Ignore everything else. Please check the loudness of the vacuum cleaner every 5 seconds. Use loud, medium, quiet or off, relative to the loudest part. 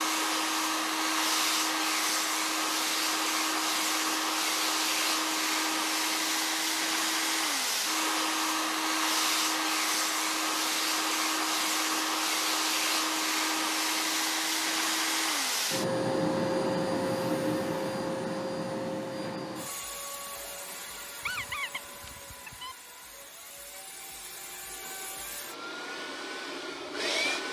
loud, loud, loud, loud, quiet, medium.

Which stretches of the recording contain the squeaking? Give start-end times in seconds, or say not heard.
21.2-22.8.